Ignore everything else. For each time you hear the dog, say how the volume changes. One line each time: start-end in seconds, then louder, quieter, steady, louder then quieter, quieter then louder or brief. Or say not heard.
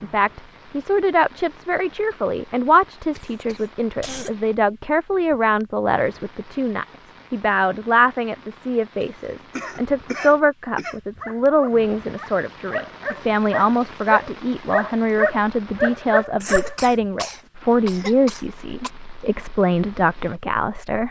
11.2-16.8 louder.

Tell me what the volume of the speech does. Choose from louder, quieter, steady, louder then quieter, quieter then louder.
steady.